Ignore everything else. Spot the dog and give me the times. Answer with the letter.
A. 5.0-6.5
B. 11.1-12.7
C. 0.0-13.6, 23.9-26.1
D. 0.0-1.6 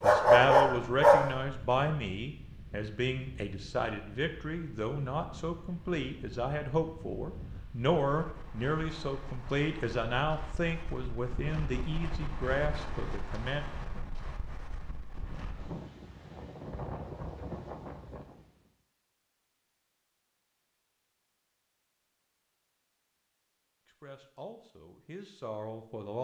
D.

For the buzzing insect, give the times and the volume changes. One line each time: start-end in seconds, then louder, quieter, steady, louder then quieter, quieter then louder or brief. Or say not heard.
not heard.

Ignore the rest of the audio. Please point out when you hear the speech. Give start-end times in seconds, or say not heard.
0.0-13.6, 23.9-26.1.